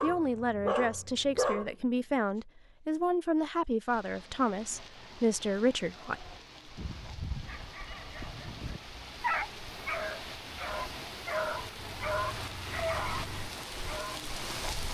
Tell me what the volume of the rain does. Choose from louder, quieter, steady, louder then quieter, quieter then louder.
louder.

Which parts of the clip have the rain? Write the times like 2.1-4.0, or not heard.
3.9-14.8.